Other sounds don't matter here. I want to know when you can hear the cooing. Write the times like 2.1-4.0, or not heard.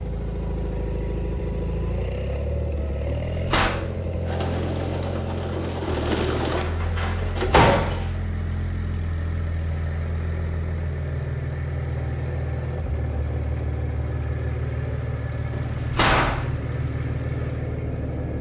4.2-7.7.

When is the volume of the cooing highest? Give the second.
6 s.